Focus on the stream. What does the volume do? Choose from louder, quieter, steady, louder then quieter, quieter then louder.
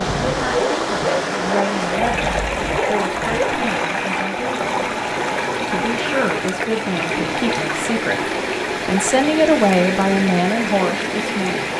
steady.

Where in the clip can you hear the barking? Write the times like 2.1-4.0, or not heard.
0.0-3.6.